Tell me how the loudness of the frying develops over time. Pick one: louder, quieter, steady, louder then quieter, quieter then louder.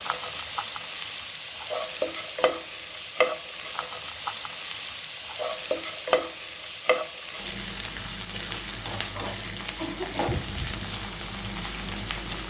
steady.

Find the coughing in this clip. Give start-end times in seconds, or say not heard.
9.2-10.3.